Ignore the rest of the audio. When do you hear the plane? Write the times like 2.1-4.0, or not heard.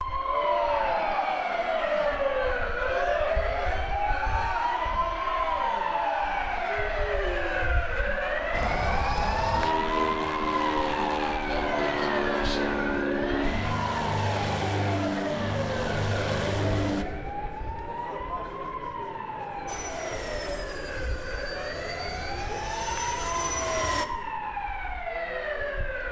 8.5-17.1, 19.6-24.1.